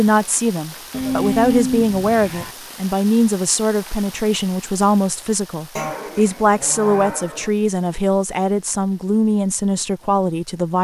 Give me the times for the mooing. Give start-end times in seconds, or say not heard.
0.9-2.5, 5.8-7.5.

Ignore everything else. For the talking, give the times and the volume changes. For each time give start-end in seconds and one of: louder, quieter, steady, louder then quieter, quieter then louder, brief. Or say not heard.
0.0-10.7 steady.